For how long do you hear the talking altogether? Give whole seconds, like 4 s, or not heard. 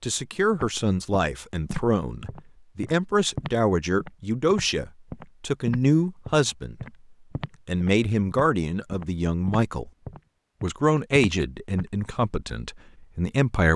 12 s.